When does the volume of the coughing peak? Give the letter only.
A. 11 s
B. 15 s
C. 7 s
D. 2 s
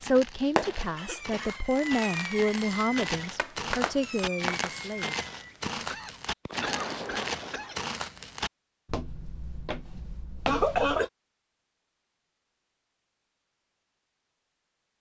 A.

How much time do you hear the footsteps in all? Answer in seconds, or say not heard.
11 s.